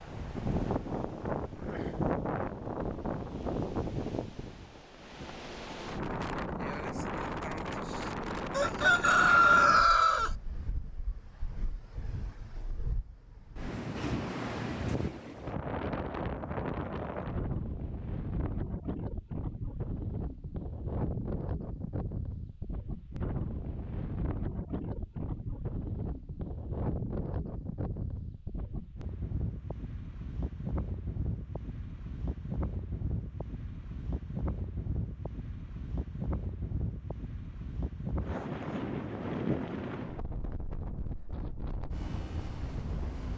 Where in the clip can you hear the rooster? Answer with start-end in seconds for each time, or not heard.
8.5-10.3.